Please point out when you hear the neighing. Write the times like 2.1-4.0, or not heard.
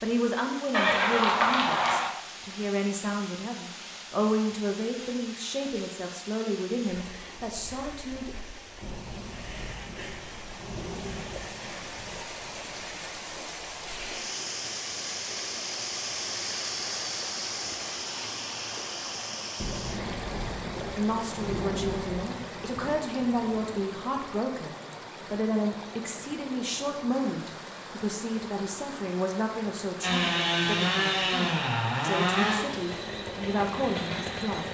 0.7-2.1.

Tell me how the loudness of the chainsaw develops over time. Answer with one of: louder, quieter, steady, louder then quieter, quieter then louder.
quieter.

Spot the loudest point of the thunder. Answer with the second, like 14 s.
22 s.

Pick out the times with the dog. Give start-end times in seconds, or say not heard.
not heard.